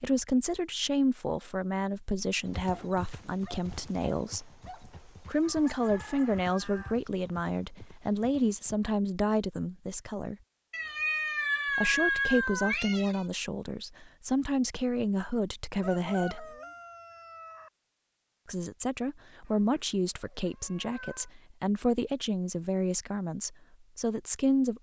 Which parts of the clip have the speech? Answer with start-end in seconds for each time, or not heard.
0.0-4.5, 5.2-10.3, 11.8-16.4, 18.4-24.7.